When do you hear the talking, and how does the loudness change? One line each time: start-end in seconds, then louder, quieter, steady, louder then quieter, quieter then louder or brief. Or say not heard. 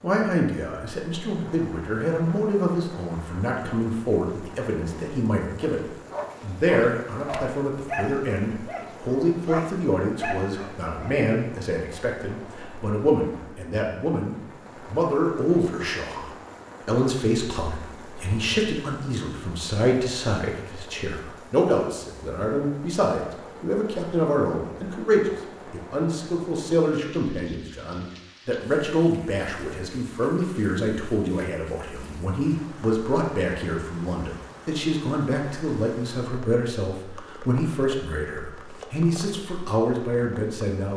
0.0-40.9 steady.